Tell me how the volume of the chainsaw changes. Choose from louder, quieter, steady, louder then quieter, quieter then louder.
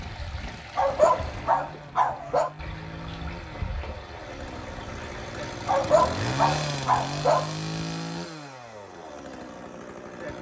louder then quieter.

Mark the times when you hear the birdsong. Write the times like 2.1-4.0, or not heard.
not heard.